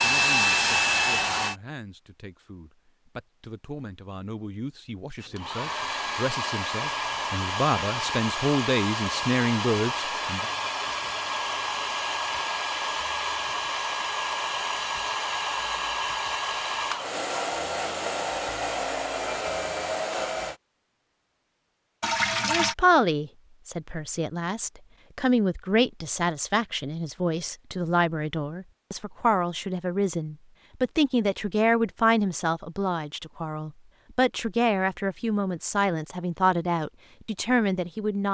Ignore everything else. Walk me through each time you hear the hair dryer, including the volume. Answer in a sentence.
The hair dryer can be heard briefly from 0.0 to 1.6 s; and from 5.2 to 20.6 s, at a steady volume.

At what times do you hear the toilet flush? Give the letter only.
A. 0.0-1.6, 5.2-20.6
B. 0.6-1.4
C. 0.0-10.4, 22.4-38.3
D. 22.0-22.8
D.